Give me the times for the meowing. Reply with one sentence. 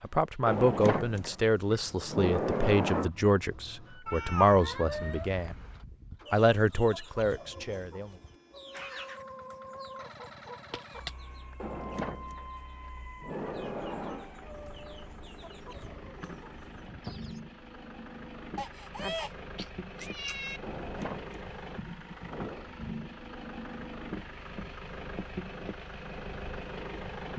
You can hear the meowing from 4.0 to 5.5 s, from 10.7 to 11.6 s and from 18.6 to 20.6 s.